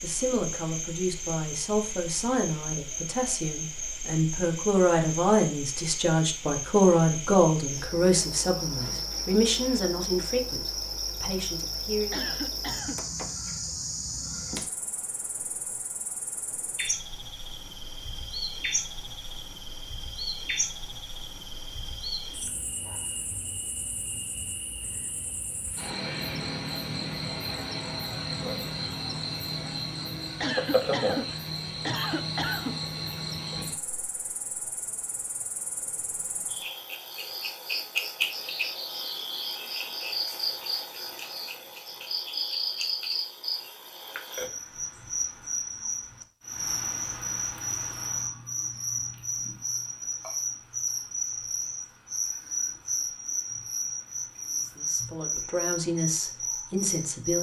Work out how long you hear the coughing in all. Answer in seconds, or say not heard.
3 s.